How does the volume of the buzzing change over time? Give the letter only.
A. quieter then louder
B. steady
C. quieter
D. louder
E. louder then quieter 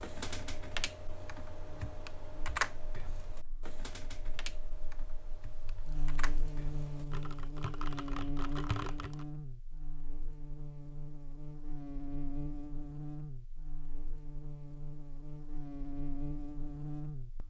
D.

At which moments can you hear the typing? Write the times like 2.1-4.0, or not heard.
0.0-9.2.